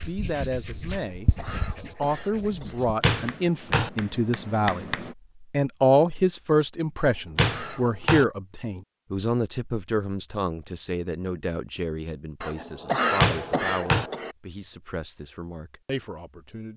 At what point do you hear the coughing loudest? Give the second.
13 s.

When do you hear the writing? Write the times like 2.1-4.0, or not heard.
0.0-5.2.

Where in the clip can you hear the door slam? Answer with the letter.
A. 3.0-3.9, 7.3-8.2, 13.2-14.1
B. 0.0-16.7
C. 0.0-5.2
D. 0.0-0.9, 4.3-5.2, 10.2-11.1
A.